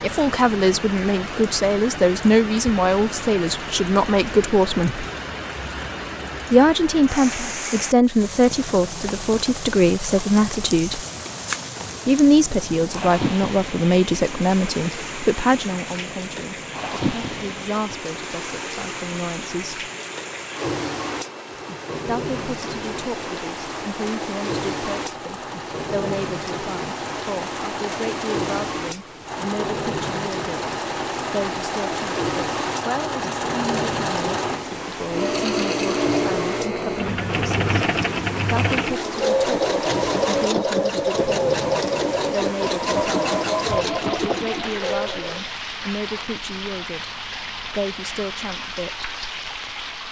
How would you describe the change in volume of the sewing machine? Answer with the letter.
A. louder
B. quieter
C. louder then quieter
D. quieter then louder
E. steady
A.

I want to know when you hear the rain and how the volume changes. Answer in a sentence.
You can hear the rain from 0.0 to 50.0 s, at a steady volume.